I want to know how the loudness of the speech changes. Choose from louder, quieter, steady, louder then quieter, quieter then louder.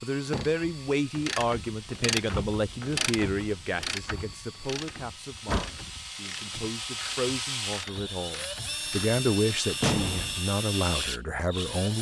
quieter then louder.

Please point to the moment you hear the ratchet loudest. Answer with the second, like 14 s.
2 s.